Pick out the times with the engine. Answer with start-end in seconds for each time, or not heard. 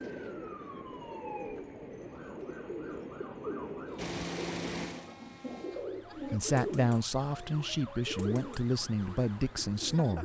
4.0-5.7.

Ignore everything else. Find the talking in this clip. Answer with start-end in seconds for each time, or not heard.
6.2-10.2.